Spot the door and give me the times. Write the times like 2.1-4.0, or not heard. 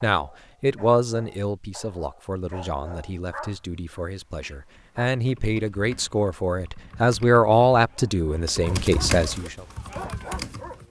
not heard.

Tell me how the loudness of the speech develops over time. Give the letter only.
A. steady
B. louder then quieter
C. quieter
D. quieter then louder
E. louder
D.